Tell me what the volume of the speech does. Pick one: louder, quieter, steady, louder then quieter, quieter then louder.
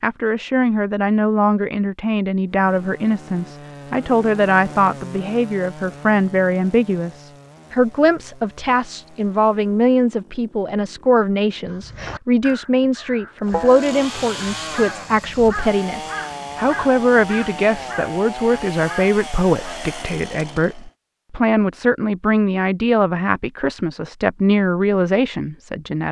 steady.